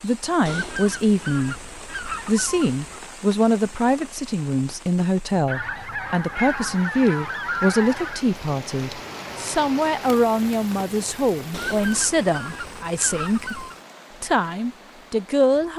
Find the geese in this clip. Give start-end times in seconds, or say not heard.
0.5-3.0, 5.5-8.2, 11.5-13.8.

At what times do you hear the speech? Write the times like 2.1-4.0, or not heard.
0.0-15.7.